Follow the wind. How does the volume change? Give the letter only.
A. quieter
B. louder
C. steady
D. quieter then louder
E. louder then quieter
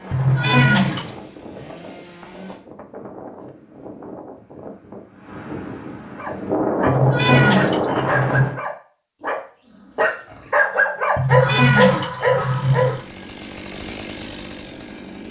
B.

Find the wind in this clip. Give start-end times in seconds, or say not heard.
0.0-8.6.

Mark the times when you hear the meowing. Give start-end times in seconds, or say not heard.
0.1-1.1, 6.8-8.6, 11.2-13.0.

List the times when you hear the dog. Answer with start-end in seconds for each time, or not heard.
6.2-13.0.